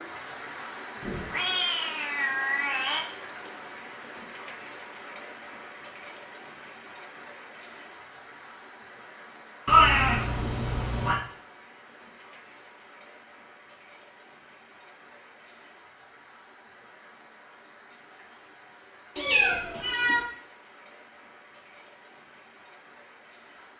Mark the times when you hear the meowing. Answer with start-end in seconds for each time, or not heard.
1.0-3.0, 9.7-11.2, 19.1-20.2.